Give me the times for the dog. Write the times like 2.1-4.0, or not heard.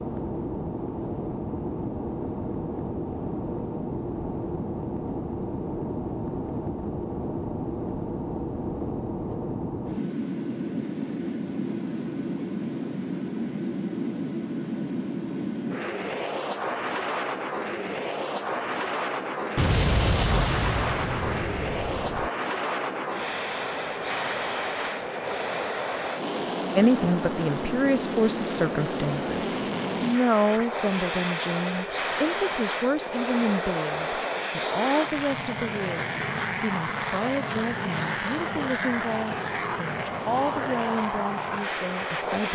not heard.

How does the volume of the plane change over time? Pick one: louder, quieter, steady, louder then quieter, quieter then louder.
steady.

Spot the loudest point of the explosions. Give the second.
20 s.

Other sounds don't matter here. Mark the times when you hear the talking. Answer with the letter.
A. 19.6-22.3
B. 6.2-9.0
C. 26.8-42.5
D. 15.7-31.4
C.